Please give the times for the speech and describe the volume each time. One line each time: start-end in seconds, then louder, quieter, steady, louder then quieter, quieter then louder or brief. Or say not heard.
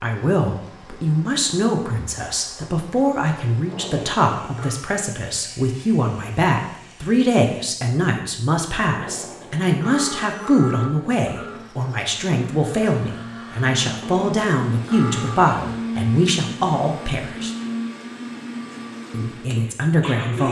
0.0-17.5 steady
19.1-20.4 brief.